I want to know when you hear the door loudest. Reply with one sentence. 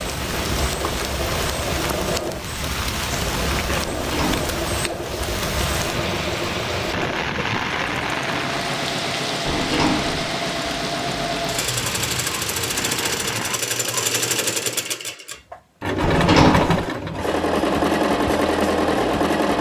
The volume of the door peaks at 16 seconds.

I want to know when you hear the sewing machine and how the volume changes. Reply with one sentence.
The sewing machine can be heard from 0.0 to 19.5 s, getting louder.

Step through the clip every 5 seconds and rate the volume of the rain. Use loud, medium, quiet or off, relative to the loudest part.
loud, loud, loud, off.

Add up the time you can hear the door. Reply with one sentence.
You can hear the door for 2 seconds altogether.